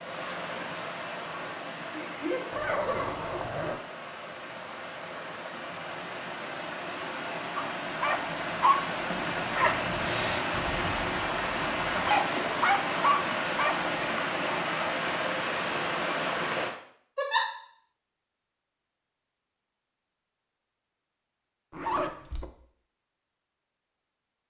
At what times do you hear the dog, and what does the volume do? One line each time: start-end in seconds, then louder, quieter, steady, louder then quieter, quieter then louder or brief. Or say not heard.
7.5-13.9 quieter then louder.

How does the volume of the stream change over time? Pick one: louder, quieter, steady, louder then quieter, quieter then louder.
louder.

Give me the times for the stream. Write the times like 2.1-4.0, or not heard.
0.0-16.8.